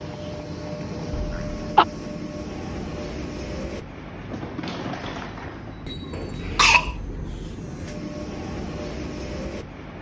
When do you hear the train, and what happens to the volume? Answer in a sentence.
The train can be heard from 0.0 to 9.9 s, at a steady volume.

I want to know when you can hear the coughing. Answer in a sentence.
You can hear the coughing from 1.1 to 1.9 s and from 6.1 to 7.0 s.